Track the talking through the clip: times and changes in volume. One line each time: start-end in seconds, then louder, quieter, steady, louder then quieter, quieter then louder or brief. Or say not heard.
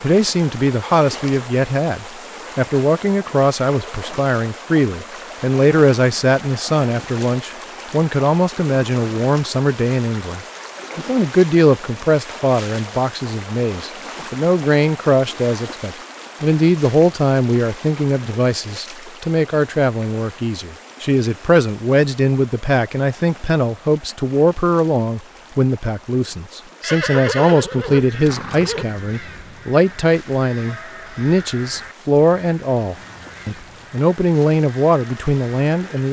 0.0-36.0 steady.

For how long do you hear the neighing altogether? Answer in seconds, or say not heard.
2 s.